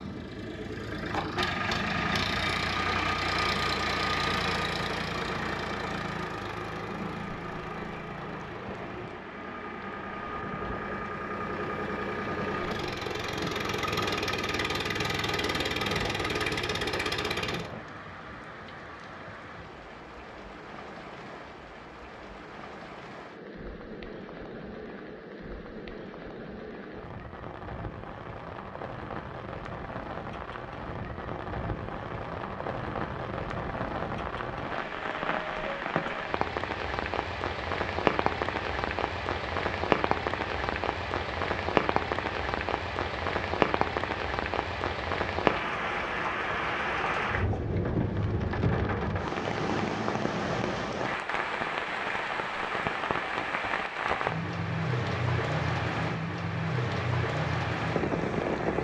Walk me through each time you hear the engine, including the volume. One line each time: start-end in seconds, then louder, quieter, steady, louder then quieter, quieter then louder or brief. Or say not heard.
0.0-17.7 quieter then louder.